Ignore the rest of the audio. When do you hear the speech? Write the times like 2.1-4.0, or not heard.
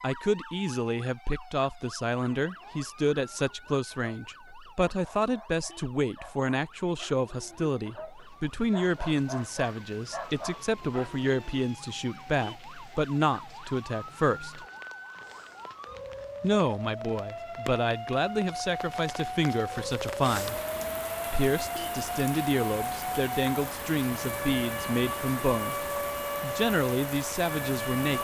0.0-14.7, 16.4-20.6, 21.3-25.8, 26.4-28.2.